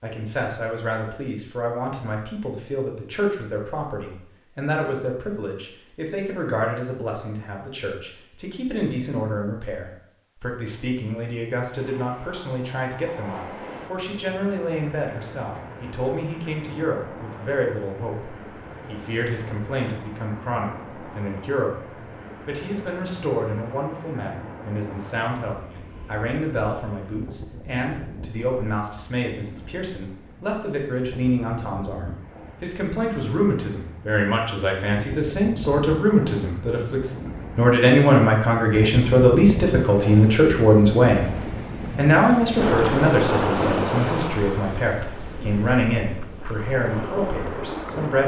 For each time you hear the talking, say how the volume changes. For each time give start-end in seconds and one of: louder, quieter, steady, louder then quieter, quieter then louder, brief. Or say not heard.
0.0-48.2 louder.